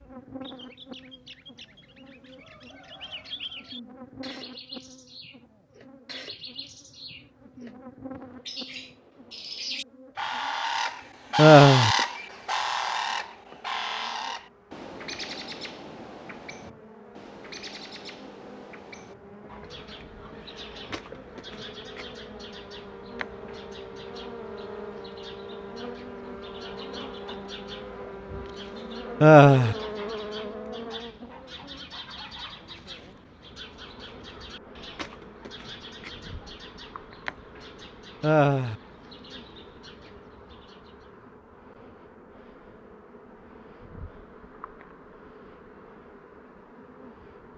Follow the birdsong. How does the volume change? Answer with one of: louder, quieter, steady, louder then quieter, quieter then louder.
louder then quieter.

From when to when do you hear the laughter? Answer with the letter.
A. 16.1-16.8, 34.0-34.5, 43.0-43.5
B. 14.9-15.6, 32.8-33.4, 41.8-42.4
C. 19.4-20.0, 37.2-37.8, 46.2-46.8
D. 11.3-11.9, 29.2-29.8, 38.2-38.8
D.